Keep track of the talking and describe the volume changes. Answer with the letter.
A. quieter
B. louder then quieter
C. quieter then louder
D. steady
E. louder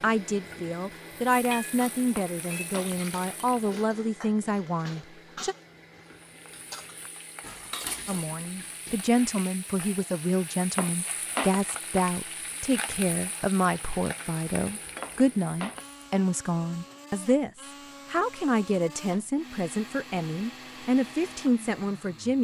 D.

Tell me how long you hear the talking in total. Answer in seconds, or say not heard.
20 s.